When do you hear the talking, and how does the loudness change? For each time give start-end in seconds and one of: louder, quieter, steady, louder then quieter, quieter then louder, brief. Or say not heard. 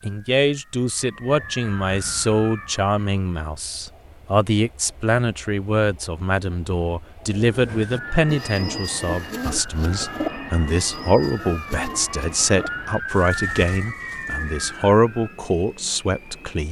0.0-16.6 steady.